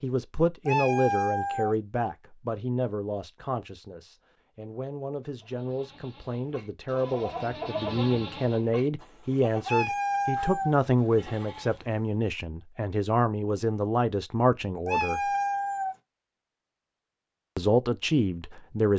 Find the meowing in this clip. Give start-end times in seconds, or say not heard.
0.7-1.8, 9.7-10.8, 14.8-15.9.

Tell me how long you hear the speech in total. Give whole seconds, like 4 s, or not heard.
17 s.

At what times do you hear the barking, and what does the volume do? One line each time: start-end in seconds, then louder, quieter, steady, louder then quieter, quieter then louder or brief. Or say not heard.
not heard.